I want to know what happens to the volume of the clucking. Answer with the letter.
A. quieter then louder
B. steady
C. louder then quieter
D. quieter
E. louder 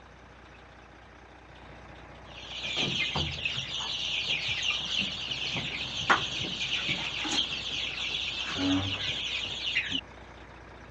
B.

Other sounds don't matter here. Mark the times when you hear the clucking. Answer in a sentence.
The clucking can be heard from 2.3 to 10.0 s.